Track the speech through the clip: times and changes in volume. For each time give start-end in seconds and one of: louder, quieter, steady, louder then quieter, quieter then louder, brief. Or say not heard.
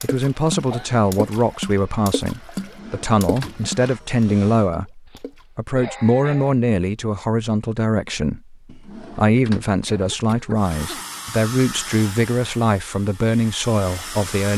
0.0-14.5 steady.